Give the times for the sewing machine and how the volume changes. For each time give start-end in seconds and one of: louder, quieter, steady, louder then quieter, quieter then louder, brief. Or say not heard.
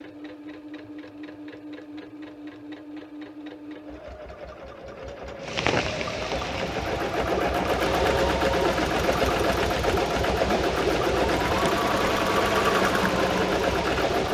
0.0-14.2 louder.